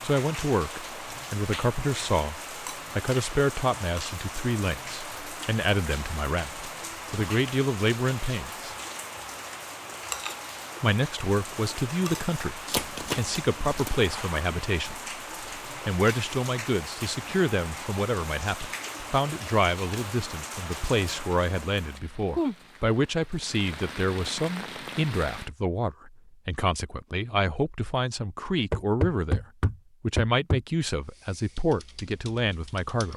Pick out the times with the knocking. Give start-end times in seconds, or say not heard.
28.7-30.6.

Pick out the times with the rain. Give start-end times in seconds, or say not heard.
0.0-25.5.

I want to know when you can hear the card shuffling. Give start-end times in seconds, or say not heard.
12.7-14.0.